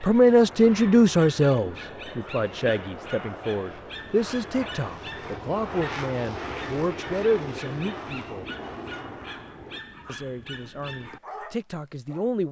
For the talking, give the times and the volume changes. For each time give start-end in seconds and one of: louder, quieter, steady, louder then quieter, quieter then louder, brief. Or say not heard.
0.0-8.4 quieter
10.1-12.4 brief.